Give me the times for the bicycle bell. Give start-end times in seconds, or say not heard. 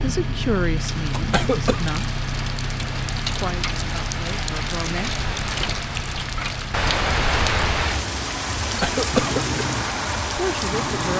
not heard.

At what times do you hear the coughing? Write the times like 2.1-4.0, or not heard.
1.1-1.8, 8.6-9.6.